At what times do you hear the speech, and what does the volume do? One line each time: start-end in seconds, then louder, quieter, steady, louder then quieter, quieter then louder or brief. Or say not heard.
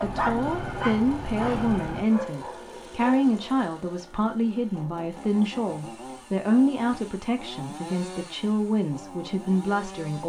0.0-10.2 steady.